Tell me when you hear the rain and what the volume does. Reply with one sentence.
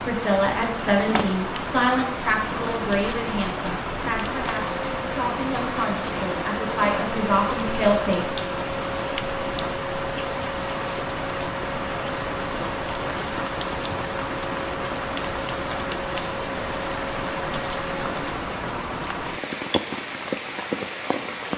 The rain can be heard from 0.0 to 21.5 s, at a steady volume.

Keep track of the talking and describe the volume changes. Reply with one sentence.
The volume of the talking goes down, then up.